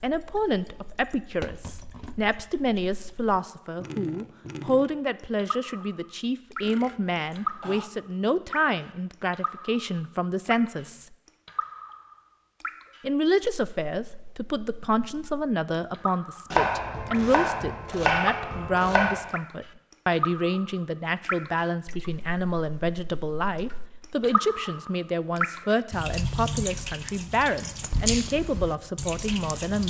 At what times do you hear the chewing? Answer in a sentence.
You can't hear the chewing here.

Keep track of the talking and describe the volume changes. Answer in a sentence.
The loudness of the talking stays about the same.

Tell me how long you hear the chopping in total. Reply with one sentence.
You can hear the chopping for 3 seconds altogether.